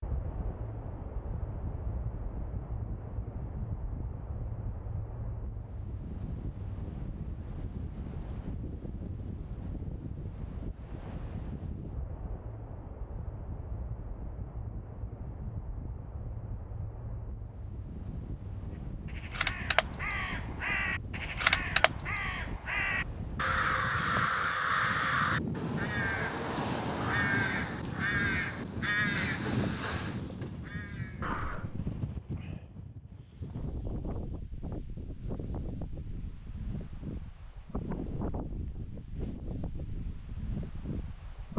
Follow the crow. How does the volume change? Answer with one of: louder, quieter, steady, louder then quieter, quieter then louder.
quieter.